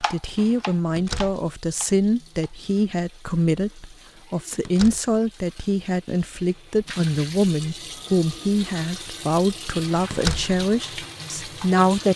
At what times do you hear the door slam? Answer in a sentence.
You can hear the door slam from 0.9 to 1.4 s, from 4.7 to 5.1 s and from 10.1 to 10.6 s.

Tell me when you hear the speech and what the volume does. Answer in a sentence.
The speech can be heard from 0.0 to 12.1 s, at a steady volume.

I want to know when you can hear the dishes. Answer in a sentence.
The dishes can't be heard in this clip.